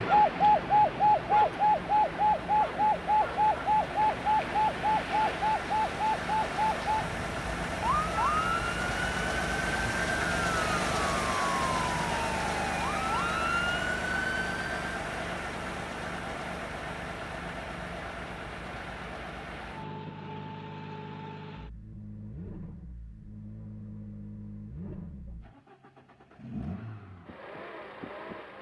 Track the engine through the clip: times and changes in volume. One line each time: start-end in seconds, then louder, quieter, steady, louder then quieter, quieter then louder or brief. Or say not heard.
0.0-28.5 louder then quieter.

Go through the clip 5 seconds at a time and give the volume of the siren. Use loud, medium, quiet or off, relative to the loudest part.
loud, medium, medium, off, off, off.